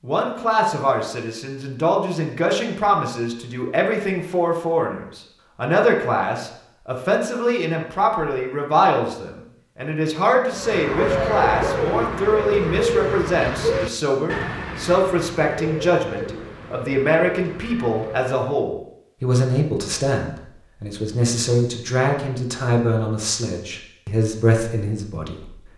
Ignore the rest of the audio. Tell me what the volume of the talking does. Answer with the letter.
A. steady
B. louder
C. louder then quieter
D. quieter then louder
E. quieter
A.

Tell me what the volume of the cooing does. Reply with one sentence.
The volume of the cooing goes down.